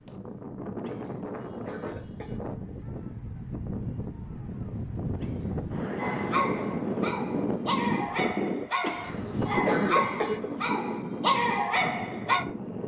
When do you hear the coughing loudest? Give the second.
10 s.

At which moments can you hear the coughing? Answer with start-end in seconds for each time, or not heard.
0.8-2.4, 5.2-6.8, 8.8-10.4.